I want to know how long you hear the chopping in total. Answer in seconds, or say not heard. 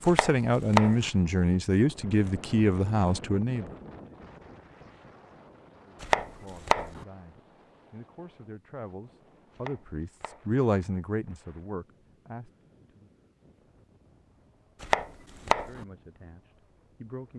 4 s.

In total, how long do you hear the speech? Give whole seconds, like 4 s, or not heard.
13 s.